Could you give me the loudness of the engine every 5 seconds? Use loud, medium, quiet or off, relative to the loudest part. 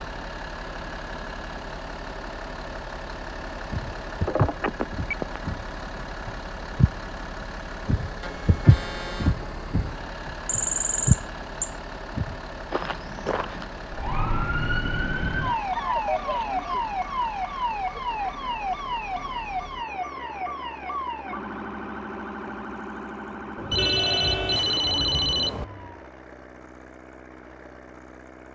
loud, loud, loud, medium, medium, medium.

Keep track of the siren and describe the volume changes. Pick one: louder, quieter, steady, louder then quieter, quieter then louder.
quieter.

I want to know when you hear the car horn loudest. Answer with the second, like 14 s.
24 s.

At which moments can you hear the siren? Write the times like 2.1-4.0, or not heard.
13.9-26.1.